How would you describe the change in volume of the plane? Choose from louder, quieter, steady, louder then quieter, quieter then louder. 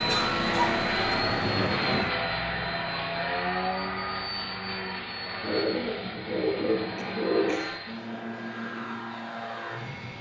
quieter.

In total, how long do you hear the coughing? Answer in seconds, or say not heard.
2 s.